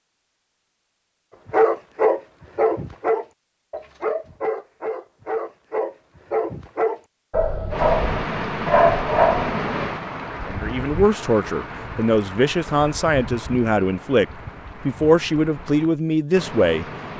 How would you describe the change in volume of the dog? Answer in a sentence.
The volume of the dog goes down, then up.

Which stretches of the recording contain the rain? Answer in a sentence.
You can hear the rain from 7.7 to 17.1 s.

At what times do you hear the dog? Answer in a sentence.
You can hear the dog from 1.5 to 9.6 s.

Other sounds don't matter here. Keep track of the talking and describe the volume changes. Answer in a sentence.
The loudness of the talking stays about the same.